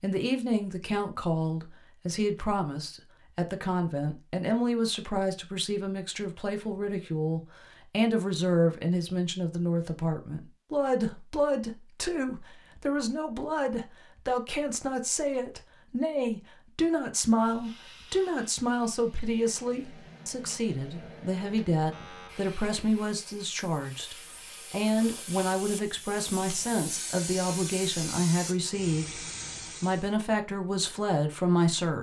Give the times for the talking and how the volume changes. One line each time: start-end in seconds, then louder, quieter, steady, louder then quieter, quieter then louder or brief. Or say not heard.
0.0-31.9 steady.